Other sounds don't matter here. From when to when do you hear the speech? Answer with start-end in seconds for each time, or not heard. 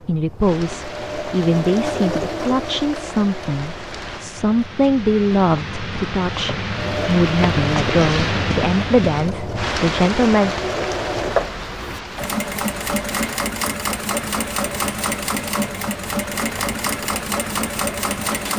0.0-10.6.